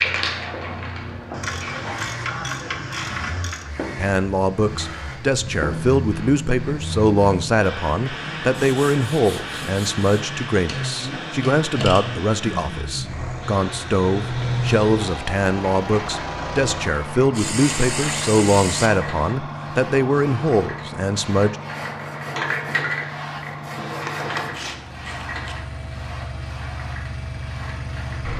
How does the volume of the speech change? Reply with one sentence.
The volume of the speech stays about the same.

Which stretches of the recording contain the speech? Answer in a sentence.
The speech can be heard from 4.0 to 21.6 s.